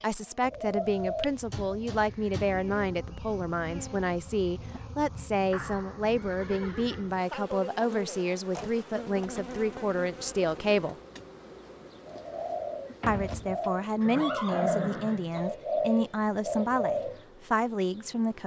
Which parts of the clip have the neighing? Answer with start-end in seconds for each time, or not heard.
5.5-7.2, 14.0-15.5.